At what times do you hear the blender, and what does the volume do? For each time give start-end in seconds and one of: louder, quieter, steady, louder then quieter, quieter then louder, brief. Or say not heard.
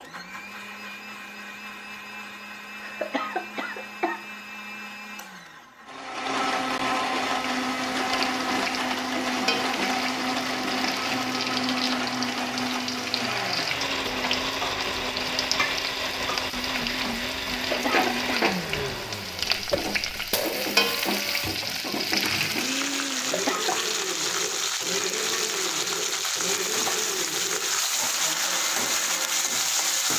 0.0-30.1 louder then quieter.